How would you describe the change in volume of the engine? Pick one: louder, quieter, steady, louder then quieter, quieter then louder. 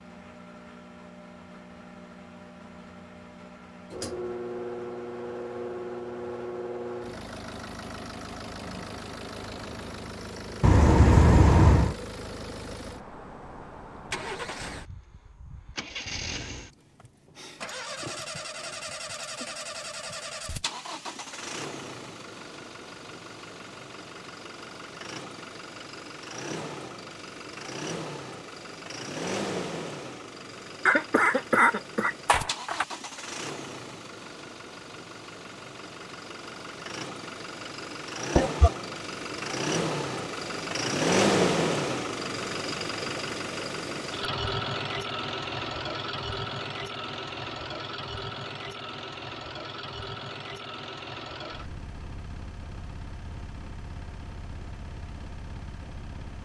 louder then quieter.